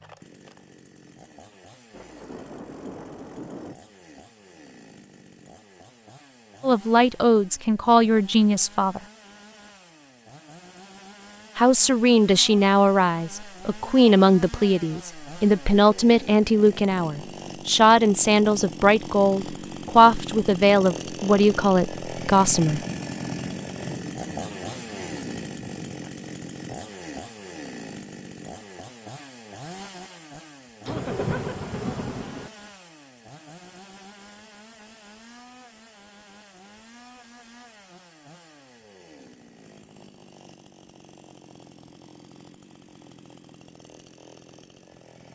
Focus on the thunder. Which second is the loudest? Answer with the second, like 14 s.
31 s.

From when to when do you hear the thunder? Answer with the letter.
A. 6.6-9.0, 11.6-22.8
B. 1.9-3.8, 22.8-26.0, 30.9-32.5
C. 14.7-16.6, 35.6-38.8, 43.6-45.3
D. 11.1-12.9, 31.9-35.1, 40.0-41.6
B.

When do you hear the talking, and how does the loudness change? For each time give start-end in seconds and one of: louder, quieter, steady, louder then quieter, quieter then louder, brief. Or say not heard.
6.6-9.0 brief
11.6-22.8 steady.